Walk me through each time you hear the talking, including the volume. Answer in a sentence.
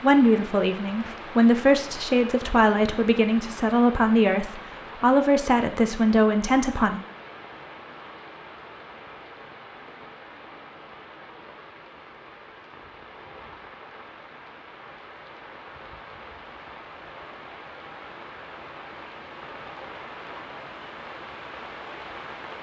You can hear the talking from 0.0 to 7.0 s, at a steady volume.